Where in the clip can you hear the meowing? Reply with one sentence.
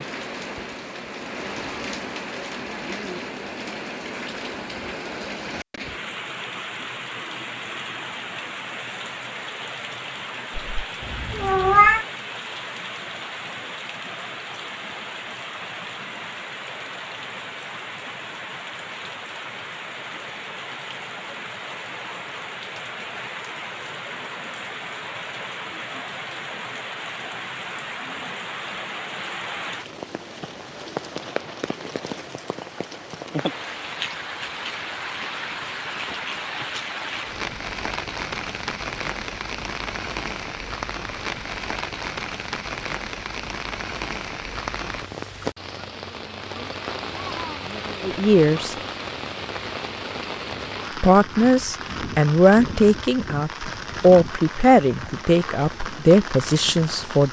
You can hear the meowing from 10.6 to 12.1 s.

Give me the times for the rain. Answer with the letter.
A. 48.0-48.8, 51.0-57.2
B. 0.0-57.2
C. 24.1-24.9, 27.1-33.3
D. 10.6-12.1
B.